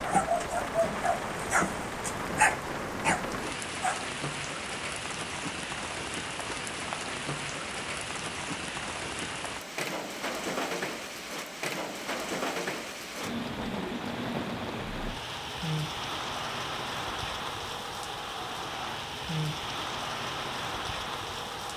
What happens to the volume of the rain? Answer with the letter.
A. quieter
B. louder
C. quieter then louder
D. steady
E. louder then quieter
D.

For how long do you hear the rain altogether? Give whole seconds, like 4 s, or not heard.
22 s.